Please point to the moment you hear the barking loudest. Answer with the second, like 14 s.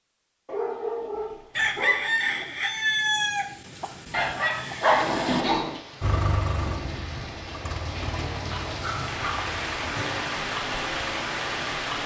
5 s.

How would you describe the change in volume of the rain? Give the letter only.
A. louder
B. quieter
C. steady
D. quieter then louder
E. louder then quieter
A.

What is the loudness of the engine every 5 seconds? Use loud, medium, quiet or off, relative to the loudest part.
off, loud, loud.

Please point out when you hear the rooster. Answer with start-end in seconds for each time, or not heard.
1.6-5.5.